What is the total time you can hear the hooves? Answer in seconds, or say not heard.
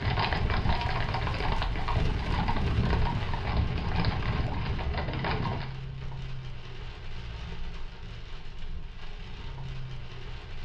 6 s.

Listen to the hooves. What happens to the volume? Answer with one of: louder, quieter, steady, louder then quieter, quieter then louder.
steady.